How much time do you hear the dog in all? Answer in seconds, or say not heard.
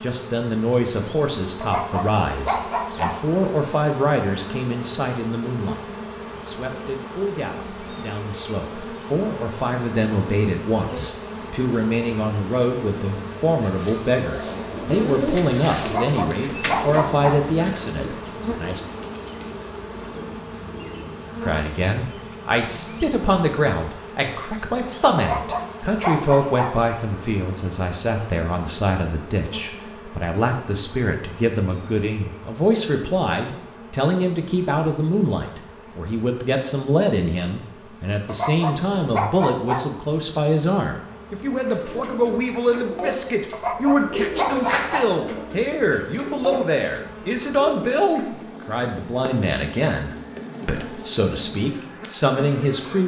8 s.